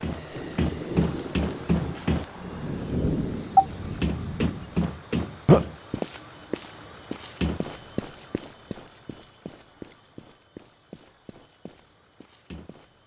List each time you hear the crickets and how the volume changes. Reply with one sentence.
You can hear the crickets from 0.0 to 13.0 s, getting quieter.